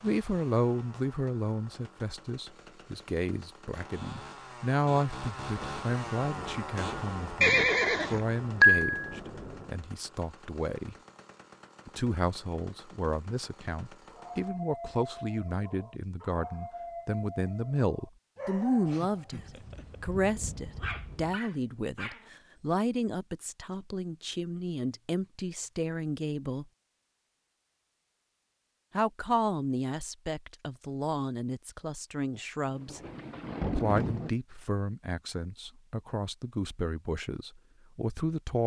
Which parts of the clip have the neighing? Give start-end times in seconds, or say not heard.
7.4-8.9.